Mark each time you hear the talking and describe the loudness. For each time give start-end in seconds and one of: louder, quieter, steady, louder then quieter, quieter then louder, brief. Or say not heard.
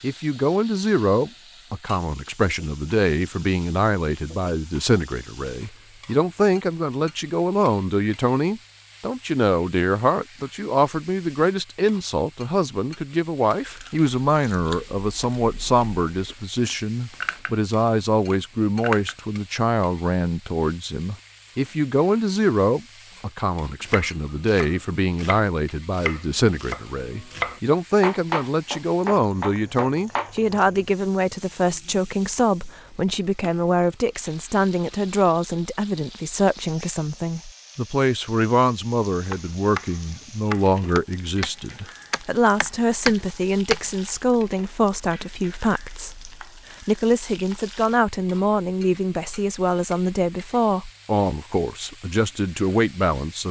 0.0-53.4 steady.